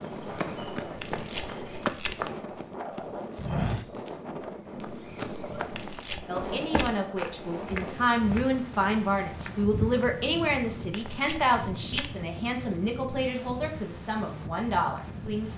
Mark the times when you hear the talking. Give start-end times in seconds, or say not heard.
6.2-15.5.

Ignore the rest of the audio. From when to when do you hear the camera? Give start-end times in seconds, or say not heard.
0.9-2.1, 5.7-6.9, 10.9-12.1.